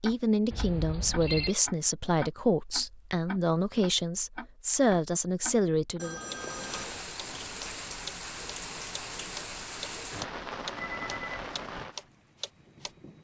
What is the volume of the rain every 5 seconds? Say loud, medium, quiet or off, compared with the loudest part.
off, loud, loud.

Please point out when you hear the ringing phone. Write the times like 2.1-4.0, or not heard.
0.5-1.6, 6.0-7.0, 10.8-11.4.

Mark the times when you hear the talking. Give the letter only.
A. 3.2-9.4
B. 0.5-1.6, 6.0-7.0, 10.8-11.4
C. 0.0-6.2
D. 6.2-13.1
C.